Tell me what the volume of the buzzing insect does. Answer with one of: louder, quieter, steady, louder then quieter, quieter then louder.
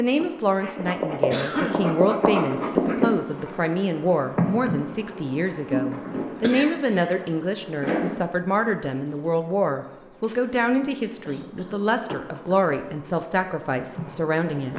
quieter then louder.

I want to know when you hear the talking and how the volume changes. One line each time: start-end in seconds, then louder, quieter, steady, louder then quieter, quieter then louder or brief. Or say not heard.
0.0-14.7 steady.